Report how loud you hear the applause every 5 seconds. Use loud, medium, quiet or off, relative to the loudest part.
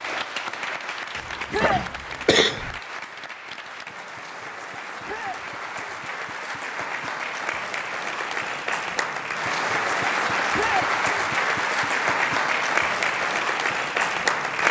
medium, medium, loud.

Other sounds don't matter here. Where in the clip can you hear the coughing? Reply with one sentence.
The coughing can be heard from 1.1 to 2.8 s.